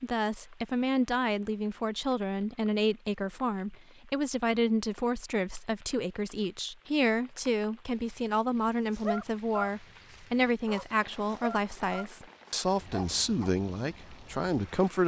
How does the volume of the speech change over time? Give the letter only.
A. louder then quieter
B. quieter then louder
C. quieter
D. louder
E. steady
E.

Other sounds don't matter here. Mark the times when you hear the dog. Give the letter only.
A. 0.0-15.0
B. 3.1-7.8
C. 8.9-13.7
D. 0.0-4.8
C.